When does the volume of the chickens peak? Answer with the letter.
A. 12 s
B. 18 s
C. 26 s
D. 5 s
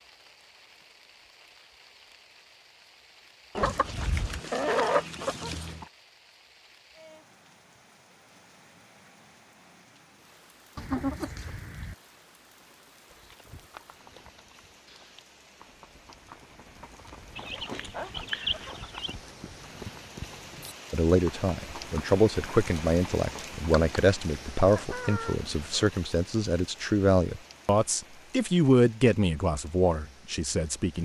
D.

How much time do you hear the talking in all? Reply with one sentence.
You can hear the talking for 10 seconds altogether.